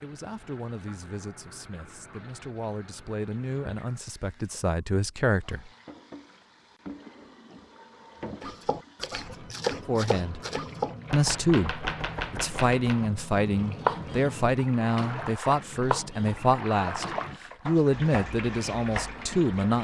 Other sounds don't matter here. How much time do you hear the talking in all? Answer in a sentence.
You can hear the talking for 14 seconds altogether.